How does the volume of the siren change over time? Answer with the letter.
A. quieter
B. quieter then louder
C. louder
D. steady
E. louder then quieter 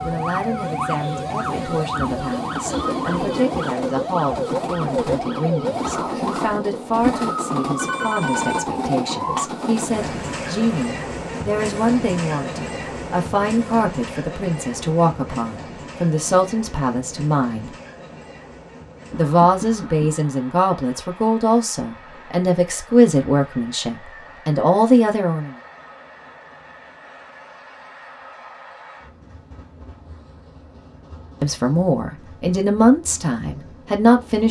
D.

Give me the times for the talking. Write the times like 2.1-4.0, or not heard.
0.0-17.8, 19.1-25.6, 31.4-34.4.